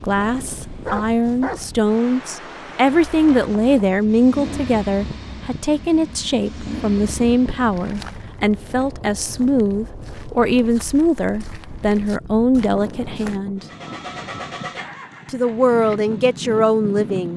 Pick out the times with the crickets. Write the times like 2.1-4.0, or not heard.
not heard.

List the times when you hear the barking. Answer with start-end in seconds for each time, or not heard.
0.2-1.7.